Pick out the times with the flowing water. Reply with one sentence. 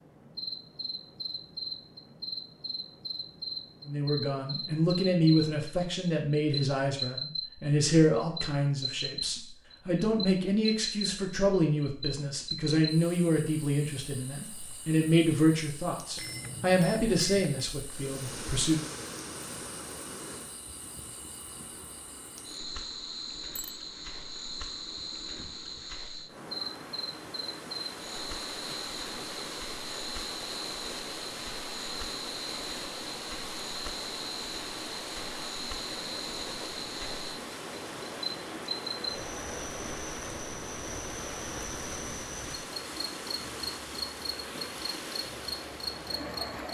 You can hear the flowing water from 17.9 to 46.6 s.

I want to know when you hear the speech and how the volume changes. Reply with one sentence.
You can hear the speech from 3.9 to 18.8 s, at a steady volume.